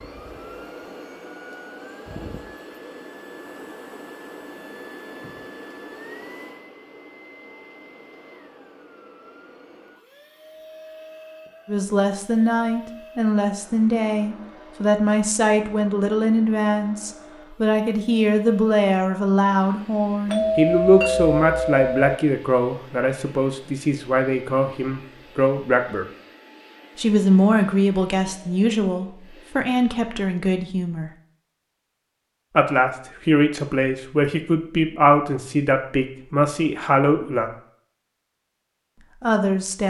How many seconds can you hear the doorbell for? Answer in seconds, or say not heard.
2 s.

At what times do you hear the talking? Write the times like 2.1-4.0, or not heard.
11.7-26.1, 26.9-31.1, 32.5-37.5, 39.2-39.8.